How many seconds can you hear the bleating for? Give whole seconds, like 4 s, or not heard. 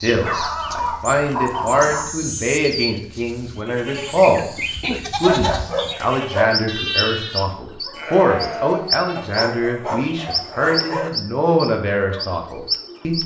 6 s.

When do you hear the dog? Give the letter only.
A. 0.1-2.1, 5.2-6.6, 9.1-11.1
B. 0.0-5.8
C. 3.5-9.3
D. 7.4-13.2
A.